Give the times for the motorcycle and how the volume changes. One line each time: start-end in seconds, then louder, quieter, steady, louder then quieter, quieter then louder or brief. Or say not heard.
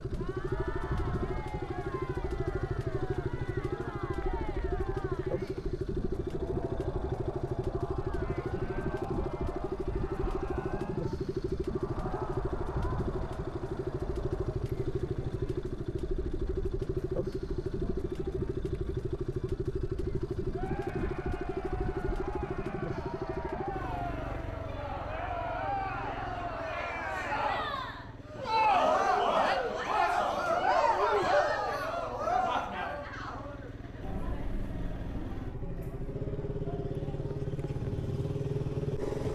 0.0-39.3 quieter then louder.